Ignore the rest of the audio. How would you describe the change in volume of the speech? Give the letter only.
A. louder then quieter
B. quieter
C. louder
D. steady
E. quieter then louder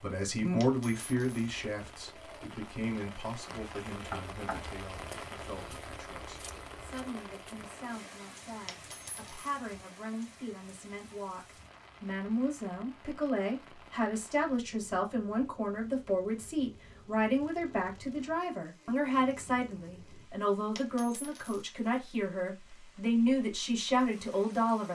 E.